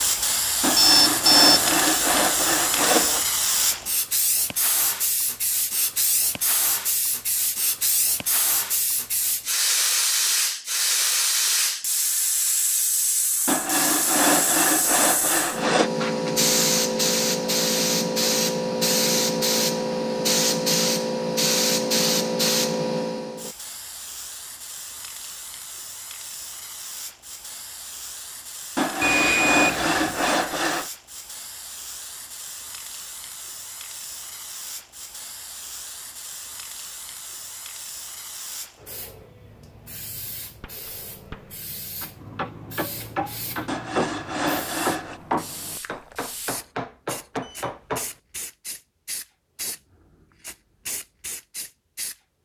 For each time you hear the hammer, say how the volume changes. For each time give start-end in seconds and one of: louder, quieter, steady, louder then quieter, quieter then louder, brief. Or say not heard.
40.6-48.0 louder.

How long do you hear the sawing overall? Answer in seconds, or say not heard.
9 s.